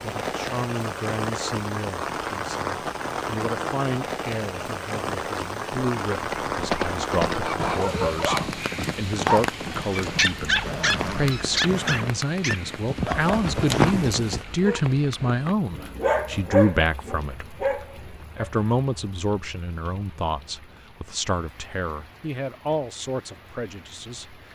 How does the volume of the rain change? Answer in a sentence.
The loudness of the rain goes down.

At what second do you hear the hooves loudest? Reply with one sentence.
The volume of the hooves peaks at 14 seconds.